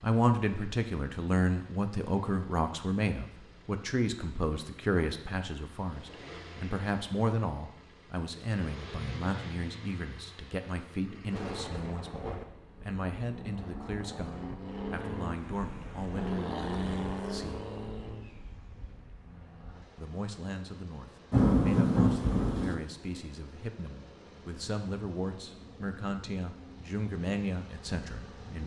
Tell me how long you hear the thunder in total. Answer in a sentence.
You can hear the thunder for 3 seconds altogether.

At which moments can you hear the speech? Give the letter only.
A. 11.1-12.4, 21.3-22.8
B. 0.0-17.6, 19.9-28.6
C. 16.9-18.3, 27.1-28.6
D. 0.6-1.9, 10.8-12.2
B.